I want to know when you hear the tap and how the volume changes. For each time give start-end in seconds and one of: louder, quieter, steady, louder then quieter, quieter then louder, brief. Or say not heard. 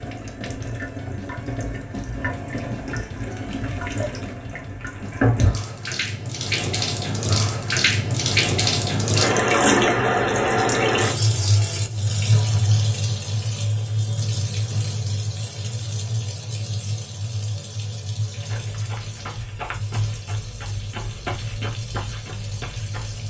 0.0-23.2 louder then quieter.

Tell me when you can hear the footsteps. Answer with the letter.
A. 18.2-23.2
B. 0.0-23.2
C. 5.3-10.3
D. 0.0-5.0
A.